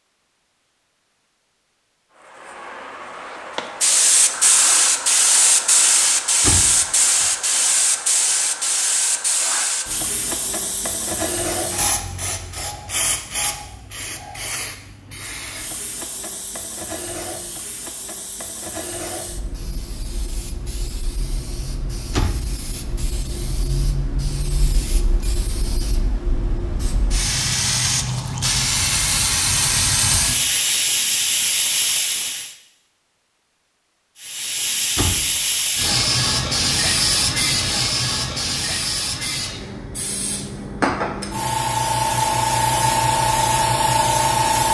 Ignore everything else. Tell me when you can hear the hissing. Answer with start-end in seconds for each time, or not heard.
2.5-32.5, 34.2-44.6.